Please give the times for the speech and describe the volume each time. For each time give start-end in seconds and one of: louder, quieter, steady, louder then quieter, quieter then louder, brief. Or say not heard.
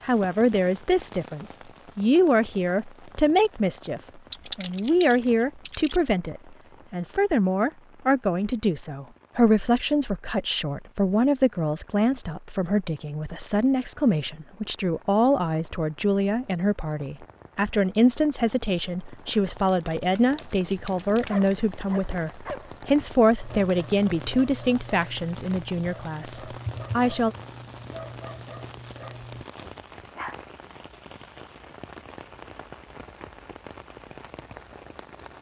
0.0-27.4 steady.